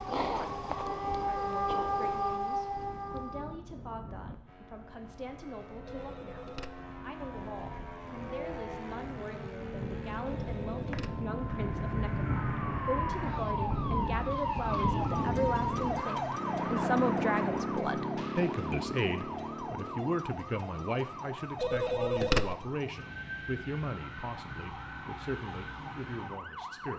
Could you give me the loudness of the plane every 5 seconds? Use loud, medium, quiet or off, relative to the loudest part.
quiet, medium, loud, loud, off, off.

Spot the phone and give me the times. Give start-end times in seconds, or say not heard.
5.8-6.8, 10.3-11.2, 21.6-22.6.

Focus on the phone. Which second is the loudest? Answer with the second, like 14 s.
22 s.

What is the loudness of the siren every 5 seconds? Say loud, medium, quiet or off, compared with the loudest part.
loud, off, loud, loud, medium, medium.